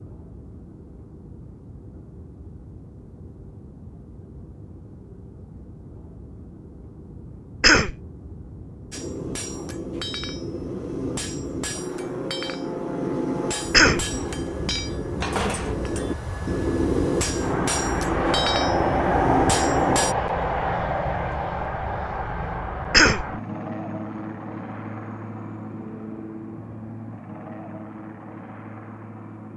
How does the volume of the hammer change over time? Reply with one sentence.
The volume of the hammer goes up.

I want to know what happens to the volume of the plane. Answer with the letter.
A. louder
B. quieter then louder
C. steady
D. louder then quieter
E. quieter
D.